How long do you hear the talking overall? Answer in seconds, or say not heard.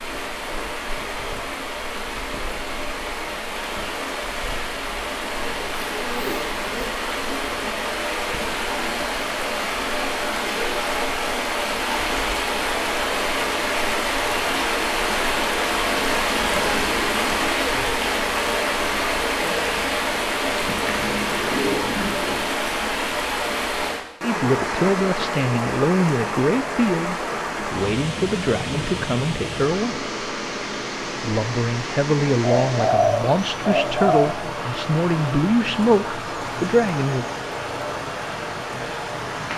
12 s.